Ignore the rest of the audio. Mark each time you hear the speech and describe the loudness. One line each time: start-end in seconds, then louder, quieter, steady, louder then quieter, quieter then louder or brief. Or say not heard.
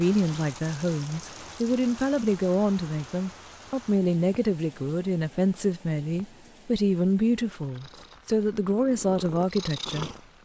0.0-10.4 steady.